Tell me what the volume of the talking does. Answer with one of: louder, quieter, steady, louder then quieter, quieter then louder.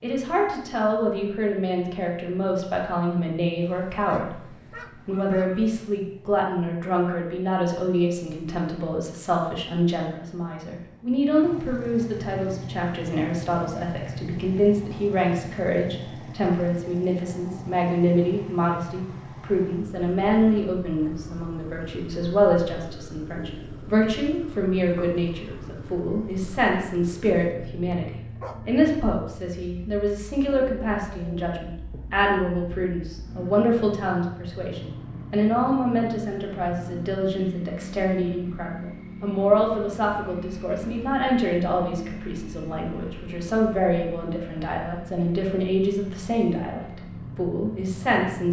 steady.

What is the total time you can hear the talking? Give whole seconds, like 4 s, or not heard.
48 s.